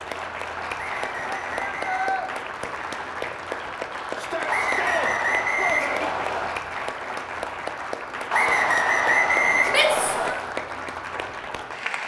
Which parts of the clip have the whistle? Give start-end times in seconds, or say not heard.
0.8-2.1, 4.5-6.5, 8.3-10.3.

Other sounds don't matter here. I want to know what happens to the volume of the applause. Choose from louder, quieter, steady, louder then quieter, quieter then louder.
steady.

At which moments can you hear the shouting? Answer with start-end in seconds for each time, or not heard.
1.0-2.3, 4.2-6.1, 9.7-10.3.